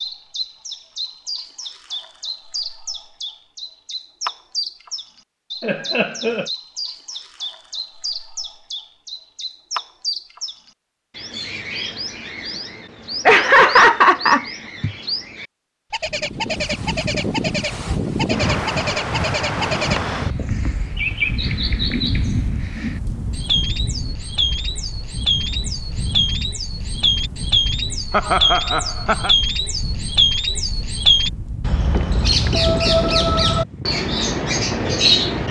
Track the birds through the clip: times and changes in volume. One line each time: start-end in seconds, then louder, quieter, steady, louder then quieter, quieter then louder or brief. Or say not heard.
0.0-35.4 louder.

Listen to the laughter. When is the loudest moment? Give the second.
14 s.